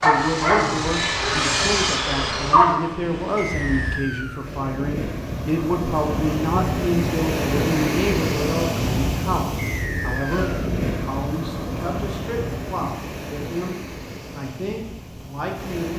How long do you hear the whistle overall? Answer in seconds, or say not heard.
2 s.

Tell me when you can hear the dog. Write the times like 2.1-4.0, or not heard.
0.0-2.8.